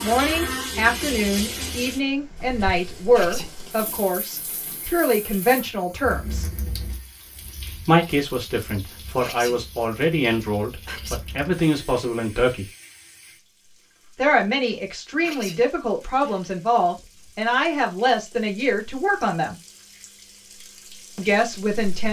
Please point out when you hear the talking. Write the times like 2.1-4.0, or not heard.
0.0-6.5, 7.8-12.7, 14.2-19.6, 21.1-22.0.